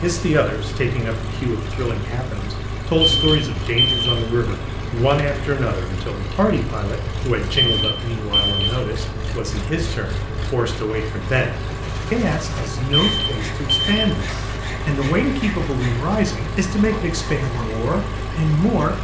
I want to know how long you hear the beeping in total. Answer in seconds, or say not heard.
4 s.